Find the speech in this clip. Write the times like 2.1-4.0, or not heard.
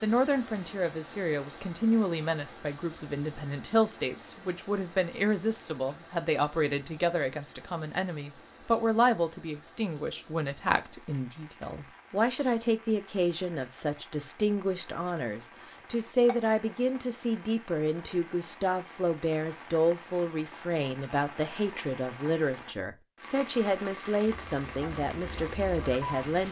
0.0-26.4.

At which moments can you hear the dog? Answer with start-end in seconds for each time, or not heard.
not heard.